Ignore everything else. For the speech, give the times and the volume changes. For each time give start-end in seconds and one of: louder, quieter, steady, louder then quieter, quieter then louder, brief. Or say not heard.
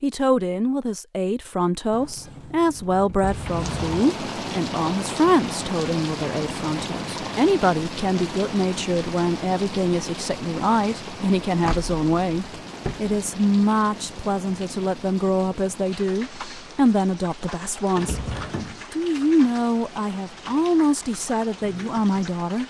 0.0-22.6 steady.